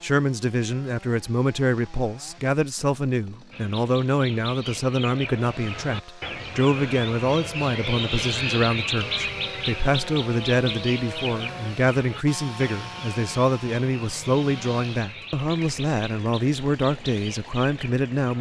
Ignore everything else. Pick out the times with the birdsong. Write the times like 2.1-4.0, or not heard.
3.5-18.3.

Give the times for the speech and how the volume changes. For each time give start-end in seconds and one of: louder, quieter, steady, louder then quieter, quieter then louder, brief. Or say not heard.
0.0-18.3 steady.